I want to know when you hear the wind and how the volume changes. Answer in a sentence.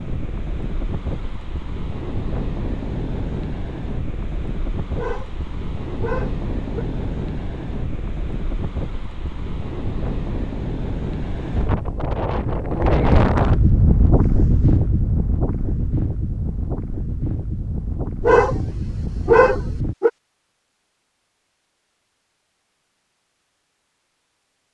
You can hear the wind from 0.0 to 19.9 s, getting louder then quieter.